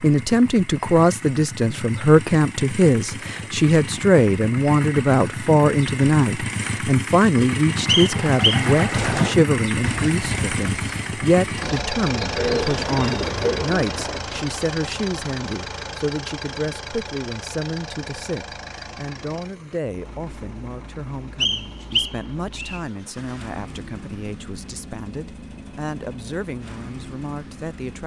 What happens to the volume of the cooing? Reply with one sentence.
The loudness of the cooing goes down, then up.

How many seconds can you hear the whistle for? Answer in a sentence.
The whistle can be heard for 2 seconds in total.